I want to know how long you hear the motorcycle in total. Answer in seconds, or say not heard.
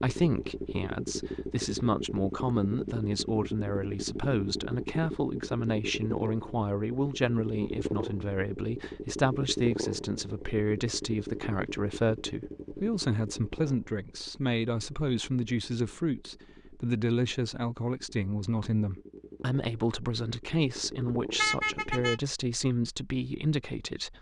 22 s.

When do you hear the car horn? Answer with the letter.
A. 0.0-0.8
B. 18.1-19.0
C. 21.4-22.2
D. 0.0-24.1
C.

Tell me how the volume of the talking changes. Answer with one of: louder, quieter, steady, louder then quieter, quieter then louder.
steady.